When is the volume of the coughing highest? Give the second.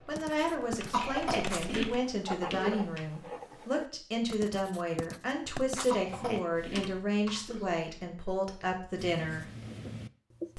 1 s.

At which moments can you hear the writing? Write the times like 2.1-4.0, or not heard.
0.1-6.4, 8.9-10.5.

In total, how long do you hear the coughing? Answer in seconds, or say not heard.
4 s.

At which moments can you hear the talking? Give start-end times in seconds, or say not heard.
0.1-9.4.